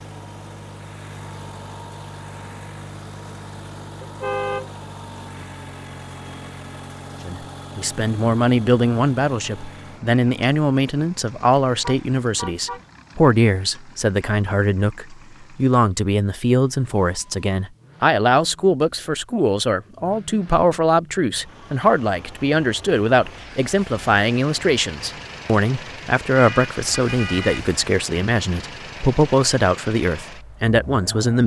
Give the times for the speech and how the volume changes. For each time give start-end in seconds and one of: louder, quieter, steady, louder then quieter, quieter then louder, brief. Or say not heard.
7.2-31.4 steady.